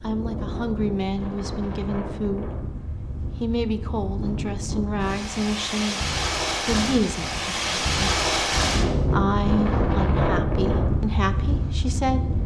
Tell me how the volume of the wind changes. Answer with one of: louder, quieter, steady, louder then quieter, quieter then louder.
louder.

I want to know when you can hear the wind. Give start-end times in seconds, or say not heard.
0.0-12.4.